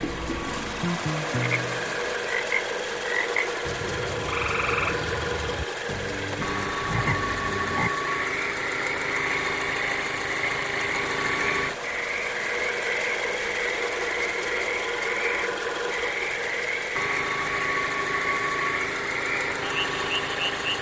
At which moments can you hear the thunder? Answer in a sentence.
The thunder can't be heard in this clip.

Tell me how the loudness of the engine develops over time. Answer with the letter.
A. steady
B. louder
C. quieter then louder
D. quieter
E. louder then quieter
A.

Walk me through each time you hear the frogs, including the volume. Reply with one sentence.
You can hear the frogs from 0.0 to 20.7 s, at a steady volume.